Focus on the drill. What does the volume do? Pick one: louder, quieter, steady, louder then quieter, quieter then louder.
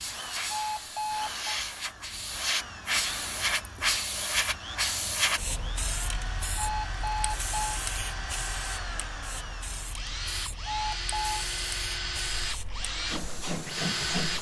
louder.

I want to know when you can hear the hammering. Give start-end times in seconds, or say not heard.
not heard.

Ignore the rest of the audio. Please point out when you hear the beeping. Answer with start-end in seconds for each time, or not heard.
0.5-1.4, 6.5-7.8, 10.7-11.4.